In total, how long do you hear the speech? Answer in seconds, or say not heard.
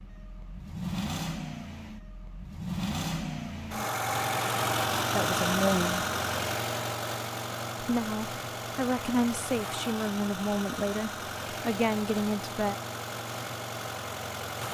6 s.